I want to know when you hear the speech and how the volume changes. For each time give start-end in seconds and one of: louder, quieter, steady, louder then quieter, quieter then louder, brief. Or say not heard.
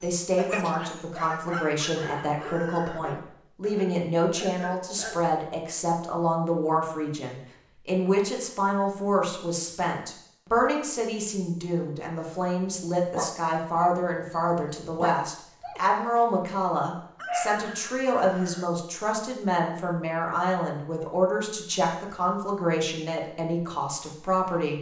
0.0-24.7 steady.